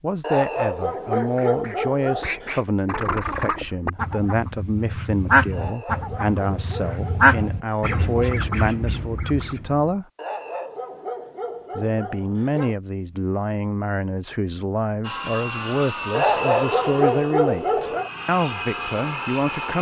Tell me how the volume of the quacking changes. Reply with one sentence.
The volume of the quacking goes up, then down.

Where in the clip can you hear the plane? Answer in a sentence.
You can hear the plane from 15.0 to 19.7 s.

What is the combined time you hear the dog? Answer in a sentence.
The dog can be heard for 10 seconds in total.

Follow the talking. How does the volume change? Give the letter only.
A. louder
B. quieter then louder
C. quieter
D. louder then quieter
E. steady
E.